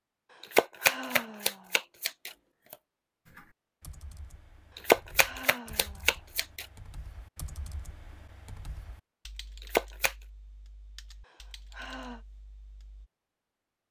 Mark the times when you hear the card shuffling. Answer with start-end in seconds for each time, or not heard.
0.5-2.8, 4.8-6.7, 9.6-10.2.